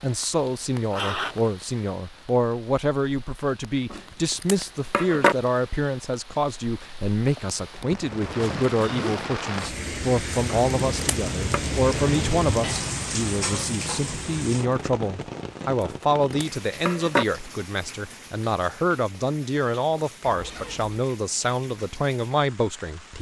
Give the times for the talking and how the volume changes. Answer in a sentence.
The talking can be heard from 0.0 to 23.1 s, at a steady volume.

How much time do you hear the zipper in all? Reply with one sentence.
You can hear the zipper for 3 seconds altogether.